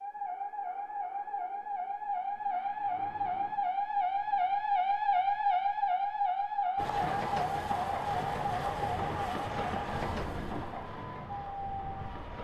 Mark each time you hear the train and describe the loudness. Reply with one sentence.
You can hear the train from 6.8 to 12.4 s, getting quieter.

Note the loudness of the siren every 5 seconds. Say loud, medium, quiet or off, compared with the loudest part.
loud, loud, medium.